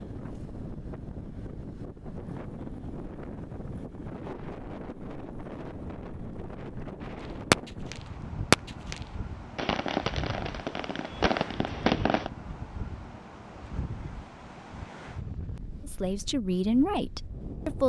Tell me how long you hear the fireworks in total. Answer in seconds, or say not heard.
5 s.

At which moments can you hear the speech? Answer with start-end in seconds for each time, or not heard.
15.8-17.8.